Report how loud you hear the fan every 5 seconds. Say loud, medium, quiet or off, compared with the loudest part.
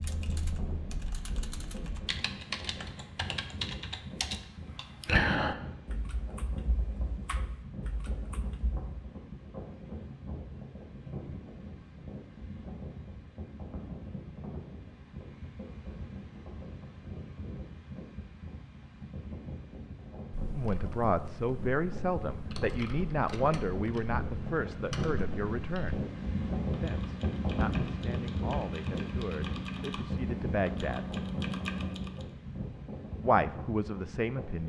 medium, medium, medium, medium, medium, loud, medium.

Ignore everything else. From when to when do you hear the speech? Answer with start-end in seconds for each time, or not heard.
20.6-26.0, 26.8-31.1, 33.2-34.6.